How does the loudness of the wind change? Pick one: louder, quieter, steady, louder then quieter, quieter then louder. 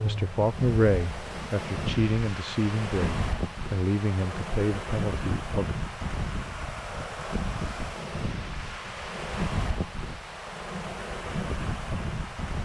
steady.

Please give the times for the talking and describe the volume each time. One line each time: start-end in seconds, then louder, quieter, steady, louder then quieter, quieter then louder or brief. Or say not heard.
0.0-5.8 quieter.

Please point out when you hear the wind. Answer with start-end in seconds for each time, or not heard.
0.0-12.6.